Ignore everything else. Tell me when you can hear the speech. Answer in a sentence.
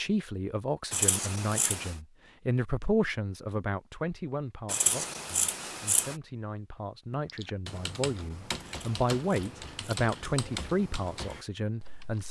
The speech can be heard from 0.0 to 12.2 s.